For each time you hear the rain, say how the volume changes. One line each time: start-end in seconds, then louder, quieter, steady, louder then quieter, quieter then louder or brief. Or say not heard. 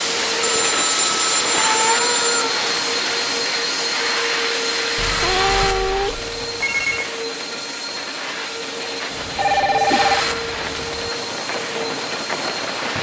0.0-12.9 quieter then louder.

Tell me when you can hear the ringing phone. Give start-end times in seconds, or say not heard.
0.4-2.5, 5.0-7.1, 9.3-10.2.